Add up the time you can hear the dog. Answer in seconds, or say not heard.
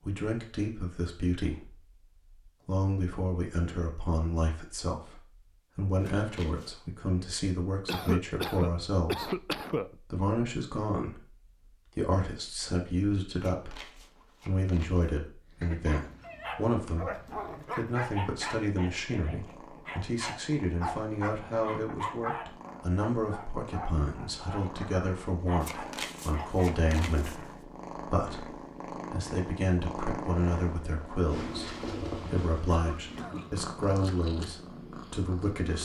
11 s.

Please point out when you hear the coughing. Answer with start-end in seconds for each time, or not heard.
7.8-9.9, 15.6-16.1, 32.6-33.5.